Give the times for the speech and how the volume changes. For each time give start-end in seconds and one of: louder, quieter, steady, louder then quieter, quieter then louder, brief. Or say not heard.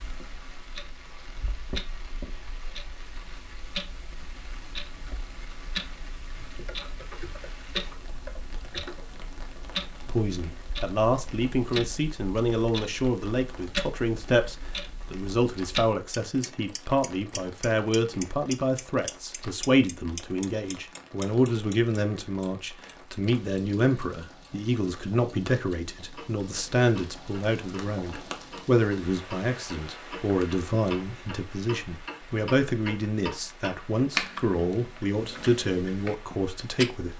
10.1-37.1 steady.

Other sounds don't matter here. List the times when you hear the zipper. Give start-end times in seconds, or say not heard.
not heard.